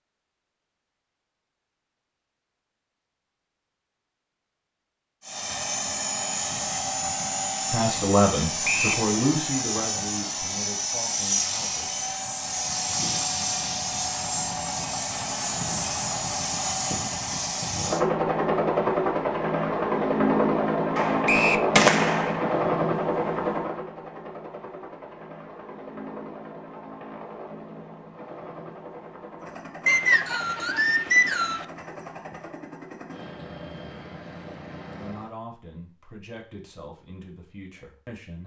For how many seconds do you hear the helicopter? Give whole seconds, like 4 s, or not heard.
30 s.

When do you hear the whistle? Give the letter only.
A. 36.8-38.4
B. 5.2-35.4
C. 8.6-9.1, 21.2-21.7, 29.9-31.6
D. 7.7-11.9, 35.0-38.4
C.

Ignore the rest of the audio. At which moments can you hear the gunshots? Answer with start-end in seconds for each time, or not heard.
20.9-22.6.